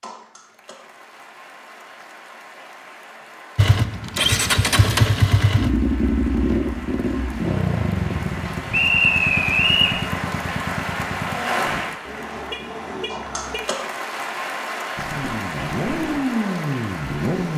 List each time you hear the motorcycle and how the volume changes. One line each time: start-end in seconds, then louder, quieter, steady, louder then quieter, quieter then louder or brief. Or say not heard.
3.5-11.8 quieter
14.9-17.5 brief.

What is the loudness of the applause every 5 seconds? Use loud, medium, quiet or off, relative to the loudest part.
quiet, medium, loud, loud.